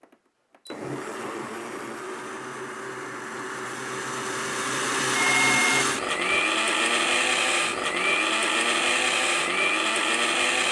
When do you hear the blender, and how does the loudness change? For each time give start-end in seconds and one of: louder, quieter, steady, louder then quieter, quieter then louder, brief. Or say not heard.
0.0-10.6 louder.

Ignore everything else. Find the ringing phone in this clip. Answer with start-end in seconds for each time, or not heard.
5.2-6.4.